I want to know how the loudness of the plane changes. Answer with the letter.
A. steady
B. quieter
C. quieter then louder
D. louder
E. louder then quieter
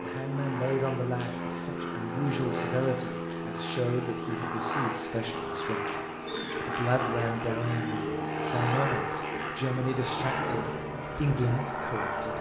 A.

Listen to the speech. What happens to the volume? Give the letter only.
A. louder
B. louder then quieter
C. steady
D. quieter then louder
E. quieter
C.